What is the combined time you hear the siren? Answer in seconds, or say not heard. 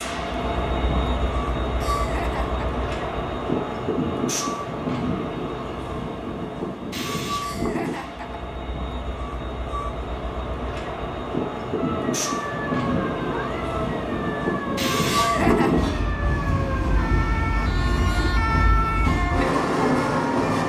9 s.